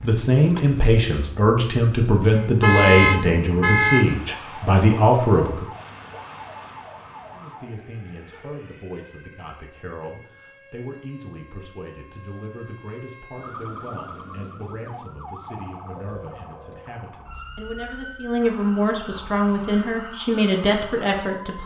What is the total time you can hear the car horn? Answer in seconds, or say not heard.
2 s.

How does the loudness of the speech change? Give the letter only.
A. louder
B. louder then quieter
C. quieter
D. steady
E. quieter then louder
E.